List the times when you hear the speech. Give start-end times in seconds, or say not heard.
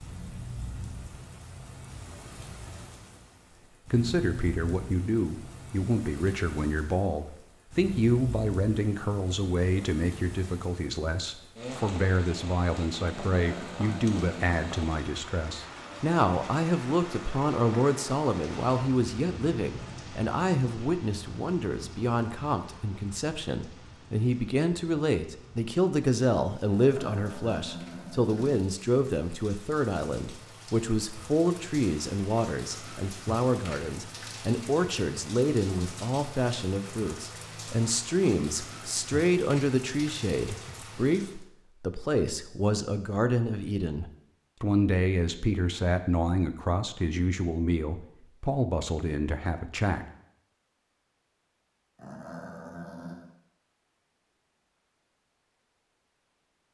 3.9-50.0.